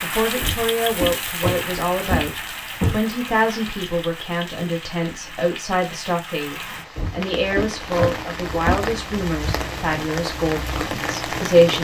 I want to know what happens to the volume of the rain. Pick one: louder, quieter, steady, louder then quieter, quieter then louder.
quieter then louder.